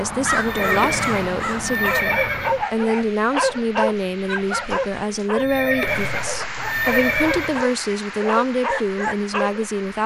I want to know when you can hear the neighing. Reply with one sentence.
You can hear the neighing from 0.3 to 2.6 s and from 5.3 to 7.7 s.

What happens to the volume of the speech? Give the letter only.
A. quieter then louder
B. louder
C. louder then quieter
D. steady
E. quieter
D.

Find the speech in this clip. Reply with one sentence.
You can hear the speech from 0.0 to 10.0 s.